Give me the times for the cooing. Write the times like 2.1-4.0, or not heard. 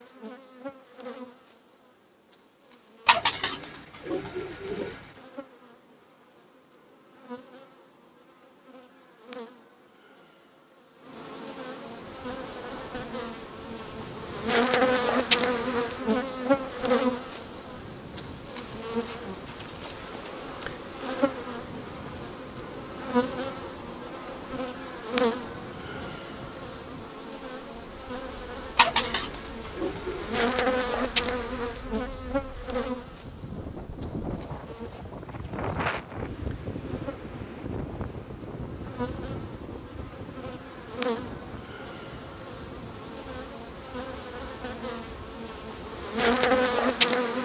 3.0-5.0, 28.8-30.5.